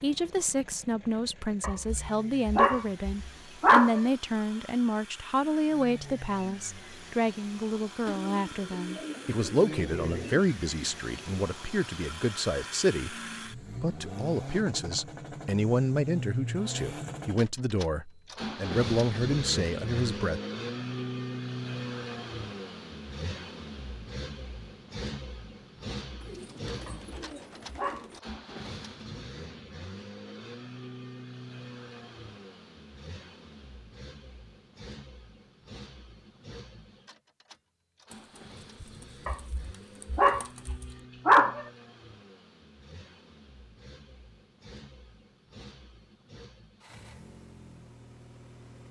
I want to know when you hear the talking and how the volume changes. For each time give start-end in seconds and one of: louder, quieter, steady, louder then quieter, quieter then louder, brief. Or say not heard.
0.0-20.4 steady.